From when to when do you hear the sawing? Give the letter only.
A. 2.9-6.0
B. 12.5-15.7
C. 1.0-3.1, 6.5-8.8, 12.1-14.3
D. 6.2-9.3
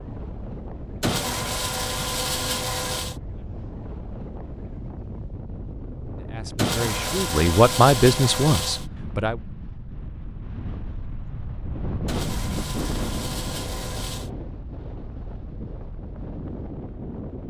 C.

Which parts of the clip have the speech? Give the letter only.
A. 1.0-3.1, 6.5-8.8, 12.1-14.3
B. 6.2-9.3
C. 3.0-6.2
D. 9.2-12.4
B.